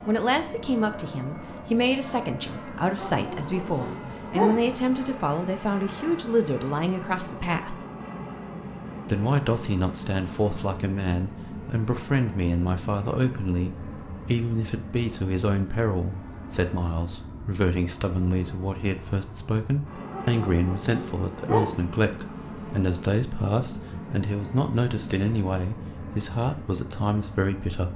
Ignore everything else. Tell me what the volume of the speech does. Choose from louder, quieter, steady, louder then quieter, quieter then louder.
steady.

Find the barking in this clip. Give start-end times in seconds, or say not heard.
3.0-4.7, 20.1-21.8.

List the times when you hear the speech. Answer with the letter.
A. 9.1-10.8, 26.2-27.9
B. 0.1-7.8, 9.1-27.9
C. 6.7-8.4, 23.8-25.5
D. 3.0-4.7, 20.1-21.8
B.